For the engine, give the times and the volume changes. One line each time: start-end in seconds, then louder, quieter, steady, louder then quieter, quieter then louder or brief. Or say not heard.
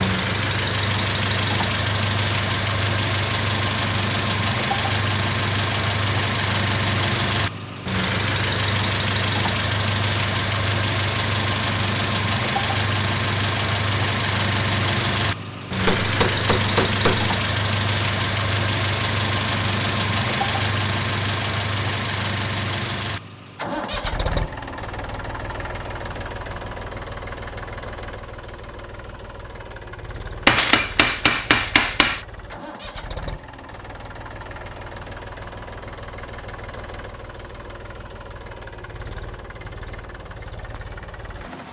0.0-41.6 quieter.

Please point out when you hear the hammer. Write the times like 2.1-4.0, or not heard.
15.8-17.4, 30.4-32.2.